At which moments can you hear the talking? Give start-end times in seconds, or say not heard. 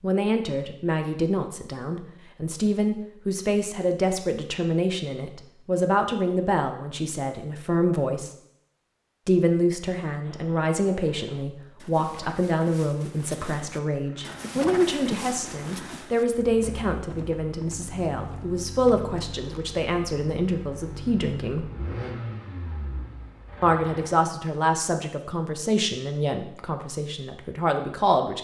0.0-8.3, 9.2-21.7, 23.6-28.3.